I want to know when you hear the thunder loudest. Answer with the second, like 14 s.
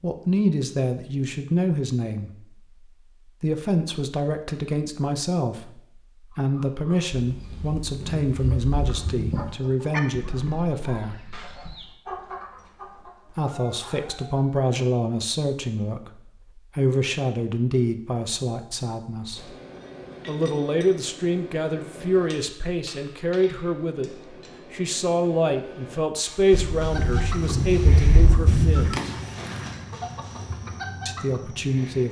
29 s.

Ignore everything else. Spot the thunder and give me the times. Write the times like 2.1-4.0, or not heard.
7.2-9.6, 26.5-29.0.